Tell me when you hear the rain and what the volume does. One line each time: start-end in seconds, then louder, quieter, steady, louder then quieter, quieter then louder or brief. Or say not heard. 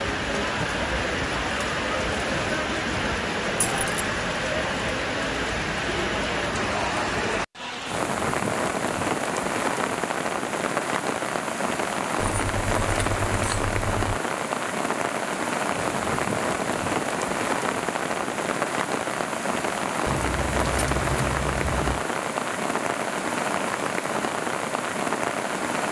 0.0-25.8 steady.